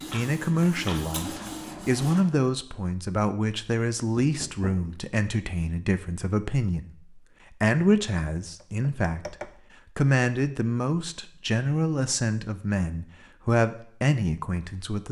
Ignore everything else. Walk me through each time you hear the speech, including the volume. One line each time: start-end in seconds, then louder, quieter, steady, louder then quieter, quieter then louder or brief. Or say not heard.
0.1-15.0 steady.